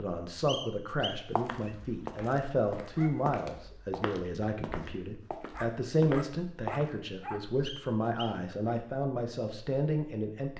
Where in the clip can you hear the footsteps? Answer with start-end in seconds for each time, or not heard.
1.4-7.0.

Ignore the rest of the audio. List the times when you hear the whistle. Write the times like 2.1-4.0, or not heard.
0.5-1.8, 7.6-8.4.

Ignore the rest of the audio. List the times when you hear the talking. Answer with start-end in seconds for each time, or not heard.
0.0-10.5.